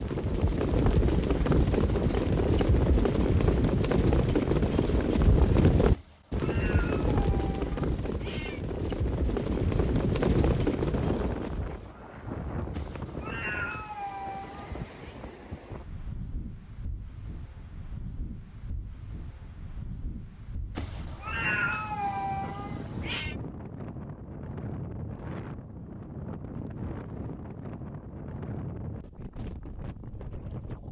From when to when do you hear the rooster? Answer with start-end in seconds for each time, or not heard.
not heard.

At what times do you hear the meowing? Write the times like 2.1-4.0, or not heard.
5.9-8.6, 12.7-15.1, 20.8-23.4.